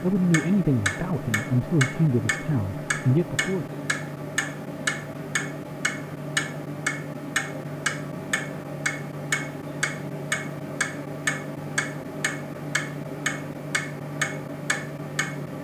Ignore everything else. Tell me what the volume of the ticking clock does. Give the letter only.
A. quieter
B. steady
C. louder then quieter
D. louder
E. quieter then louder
B.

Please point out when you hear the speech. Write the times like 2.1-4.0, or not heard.
0.0-3.8.